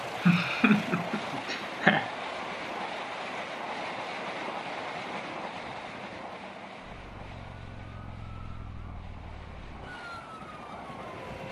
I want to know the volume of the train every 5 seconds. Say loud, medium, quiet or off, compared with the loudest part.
loud, medium, medium.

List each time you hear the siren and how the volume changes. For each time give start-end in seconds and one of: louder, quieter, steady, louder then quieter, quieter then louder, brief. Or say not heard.
6.8-11.2 steady.